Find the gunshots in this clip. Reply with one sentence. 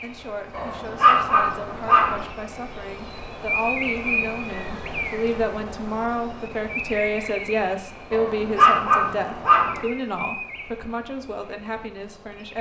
You can't hear the gunshots here.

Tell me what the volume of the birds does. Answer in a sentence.
The volume of the birds goes up, then down.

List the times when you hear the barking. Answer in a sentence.
The barking can be heard from 0.5 to 2.2 s and from 8.1 to 9.8 s.